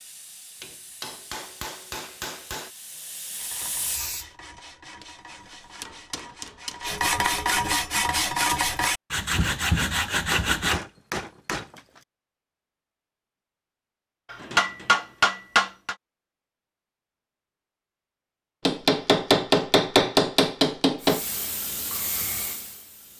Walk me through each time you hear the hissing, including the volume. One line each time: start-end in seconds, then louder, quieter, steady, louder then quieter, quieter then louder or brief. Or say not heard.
0.0-4.5 louder
21.0-23.1 brief.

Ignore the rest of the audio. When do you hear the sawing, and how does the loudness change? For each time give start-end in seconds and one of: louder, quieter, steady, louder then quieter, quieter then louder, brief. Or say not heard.
3.4-10.8 louder.